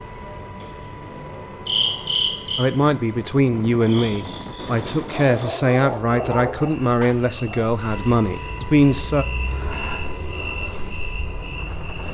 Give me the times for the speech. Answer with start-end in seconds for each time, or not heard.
2.5-9.2.